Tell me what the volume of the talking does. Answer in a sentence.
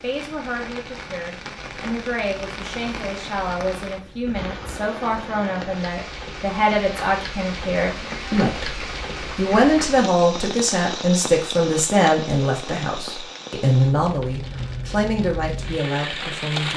The volume of the talking goes up.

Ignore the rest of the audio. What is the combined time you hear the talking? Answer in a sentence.
The talking can be heard for 17 seconds in total.